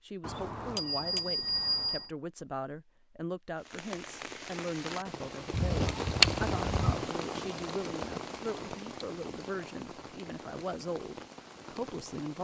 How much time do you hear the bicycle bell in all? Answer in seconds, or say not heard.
2 s.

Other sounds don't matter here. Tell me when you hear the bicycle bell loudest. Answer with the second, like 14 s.
2 s.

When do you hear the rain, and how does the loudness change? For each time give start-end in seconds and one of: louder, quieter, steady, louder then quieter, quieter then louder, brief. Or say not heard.
3.5-12.3 louder then quieter.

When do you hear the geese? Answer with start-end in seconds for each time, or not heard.
5.5-7.0.